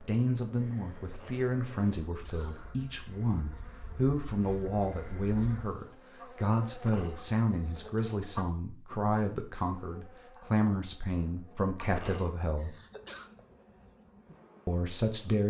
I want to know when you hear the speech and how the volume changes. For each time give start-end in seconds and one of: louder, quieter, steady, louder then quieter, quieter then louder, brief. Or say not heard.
0.0-12.8 steady
14.7-15.4 brief.